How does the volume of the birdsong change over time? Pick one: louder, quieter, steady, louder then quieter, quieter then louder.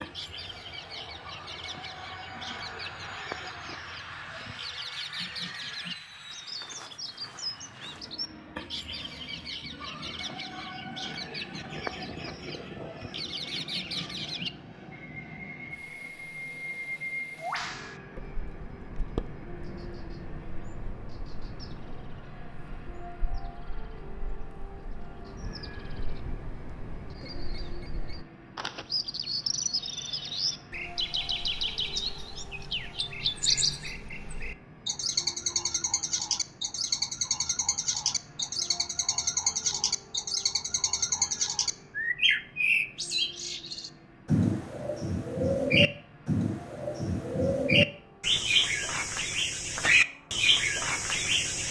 louder.